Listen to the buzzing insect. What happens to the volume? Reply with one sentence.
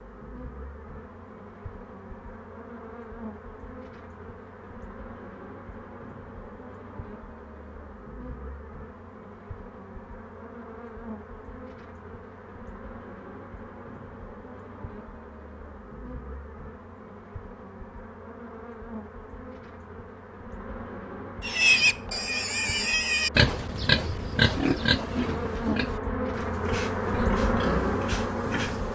The loudness of the buzzing insect goes up.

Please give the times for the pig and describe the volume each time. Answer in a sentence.
You can hear the pig from 21.4 to 28.8 s, getting quieter.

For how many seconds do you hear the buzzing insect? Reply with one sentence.
You can hear the buzzing insect for 29 seconds altogether.